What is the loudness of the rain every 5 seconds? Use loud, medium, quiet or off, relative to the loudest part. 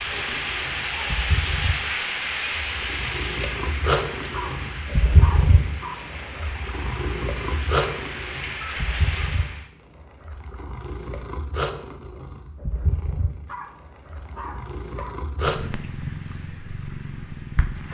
loud, medium, off, off.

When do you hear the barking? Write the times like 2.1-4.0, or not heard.
4.3-6.0, 13.4-15.2.